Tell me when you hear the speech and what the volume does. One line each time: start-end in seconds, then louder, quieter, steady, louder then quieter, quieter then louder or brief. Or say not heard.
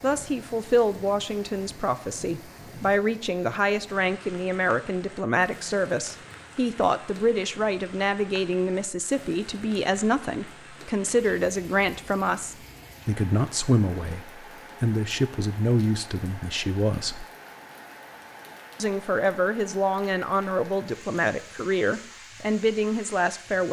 0.0-17.2 steady
18.8-23.6 steady.